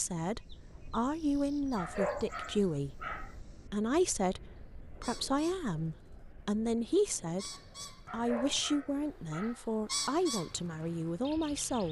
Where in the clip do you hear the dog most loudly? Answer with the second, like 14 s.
2 s.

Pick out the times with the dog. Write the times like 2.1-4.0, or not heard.
1.8-3.4, 8.1-9.7.